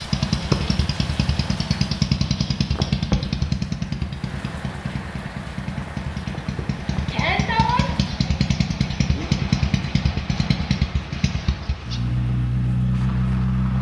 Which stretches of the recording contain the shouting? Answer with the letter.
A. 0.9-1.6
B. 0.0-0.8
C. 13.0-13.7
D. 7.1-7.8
D.